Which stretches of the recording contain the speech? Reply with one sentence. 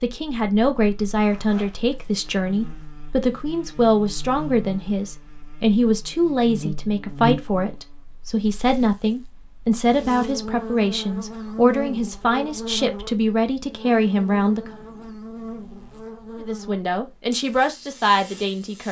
You can hear the speech from 0.0 to 14.7 s and from 16.4 to 18.8 s.